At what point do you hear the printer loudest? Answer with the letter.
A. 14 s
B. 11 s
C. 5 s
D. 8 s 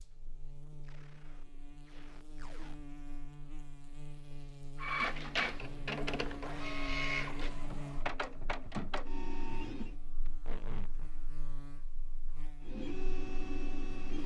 C.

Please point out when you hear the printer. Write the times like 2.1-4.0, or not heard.
4.8-9.9, 12.6-14.2.